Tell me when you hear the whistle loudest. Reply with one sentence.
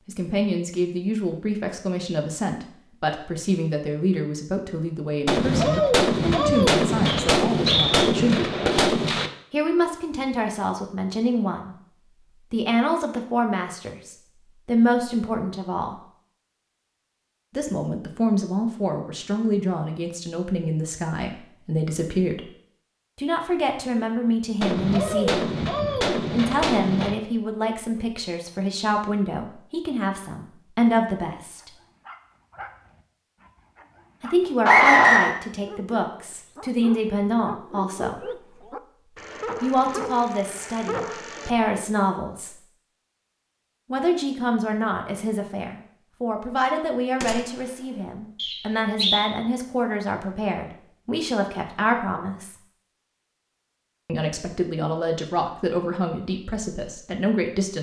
The volume of the whistle peaks at 35 seconds.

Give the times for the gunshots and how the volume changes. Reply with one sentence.
The gunshots can be heard from 5.2 to 9.3 s, at a steady volume; briefly from 24.6 to 27.1 s; and briefly from 47.2 to 47.6 s.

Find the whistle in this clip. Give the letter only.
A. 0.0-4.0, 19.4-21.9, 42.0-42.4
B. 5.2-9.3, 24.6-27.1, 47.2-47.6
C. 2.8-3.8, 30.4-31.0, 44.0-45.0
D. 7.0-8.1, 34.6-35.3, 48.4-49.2
D.